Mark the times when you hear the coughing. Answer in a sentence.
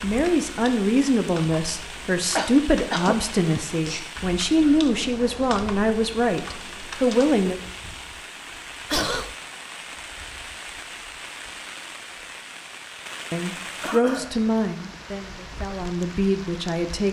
You can hear the coughing from 2.4 to 3.6 s, from 8.9 to 9.3 s and from 13.8 to 14.3 s.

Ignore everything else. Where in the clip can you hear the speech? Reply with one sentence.
You can hear the speech from 0.0 to 7.6 s and from 13.3 to 17.0 s.